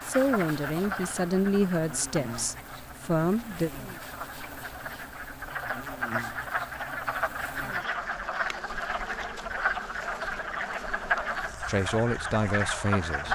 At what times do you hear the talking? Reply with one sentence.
The talking can be heard from 0.0 to 3.7 s and from 11.7 to 13.3 s.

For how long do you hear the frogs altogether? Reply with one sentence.
You can hear the frogs for 13 seconds altogether.